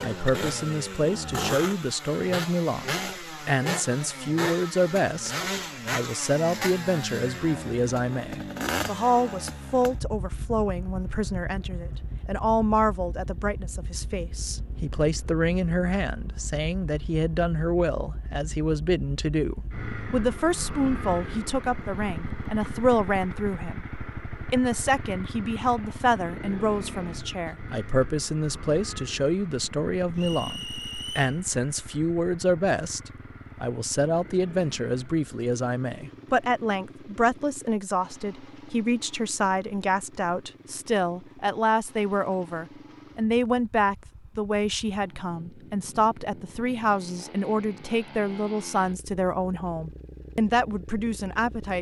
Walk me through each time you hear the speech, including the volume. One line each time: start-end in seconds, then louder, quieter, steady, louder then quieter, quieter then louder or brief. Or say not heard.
0.0-51.7 steady.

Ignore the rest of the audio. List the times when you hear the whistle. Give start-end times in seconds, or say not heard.
30.1-31.4.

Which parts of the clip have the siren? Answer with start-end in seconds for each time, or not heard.
not heard.